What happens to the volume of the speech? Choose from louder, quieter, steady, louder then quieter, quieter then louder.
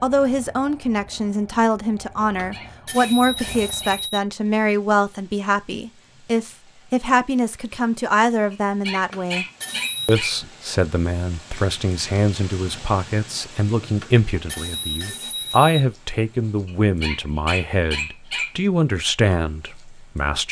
steady.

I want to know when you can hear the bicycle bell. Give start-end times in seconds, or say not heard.
2.2-4.2, 8.9-10.2, 13.8-15.8.